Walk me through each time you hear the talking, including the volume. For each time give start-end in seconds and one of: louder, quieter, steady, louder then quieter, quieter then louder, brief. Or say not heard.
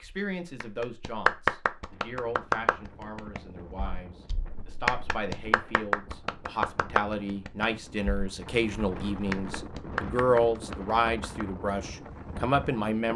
0.0-13.1 louder.